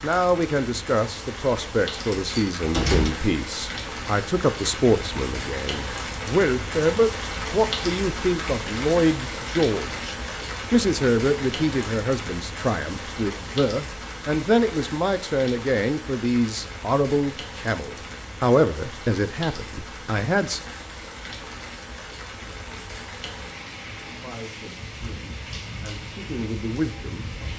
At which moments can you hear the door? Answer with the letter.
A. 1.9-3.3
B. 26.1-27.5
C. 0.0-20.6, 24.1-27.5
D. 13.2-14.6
A.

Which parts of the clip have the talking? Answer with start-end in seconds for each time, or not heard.
0.0-20.6, 24.1-27.5.